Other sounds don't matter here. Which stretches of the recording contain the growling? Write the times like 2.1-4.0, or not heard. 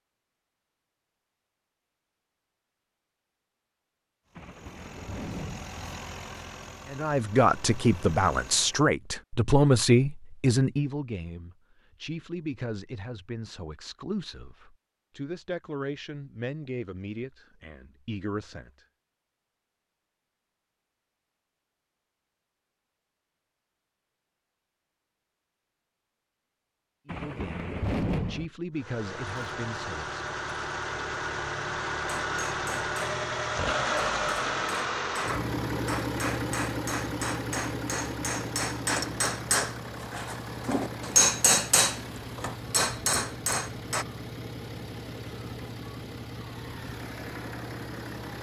not heard.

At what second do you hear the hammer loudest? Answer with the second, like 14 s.
41 s.